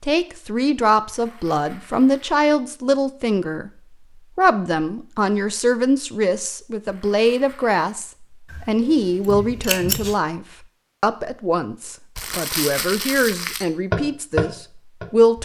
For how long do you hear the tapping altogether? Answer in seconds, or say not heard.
2 s.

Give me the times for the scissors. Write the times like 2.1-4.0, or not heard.
8.5-10.2.